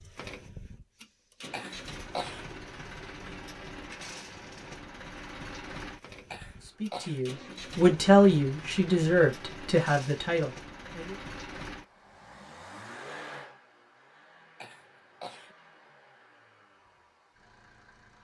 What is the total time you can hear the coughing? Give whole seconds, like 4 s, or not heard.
3 s.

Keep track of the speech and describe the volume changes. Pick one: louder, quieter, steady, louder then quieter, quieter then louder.
quieter.